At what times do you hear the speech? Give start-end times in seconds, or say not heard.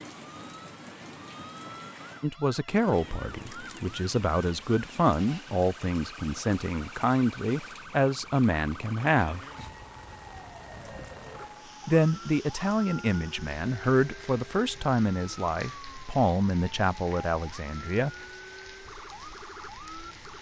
2.2-9.4, 11.8-18.1.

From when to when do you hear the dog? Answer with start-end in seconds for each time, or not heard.
not heard.